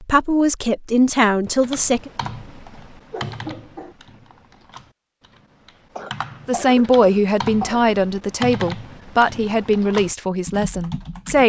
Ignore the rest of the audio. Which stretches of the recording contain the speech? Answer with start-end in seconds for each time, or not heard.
0.0-2.1, 6.5-11.4.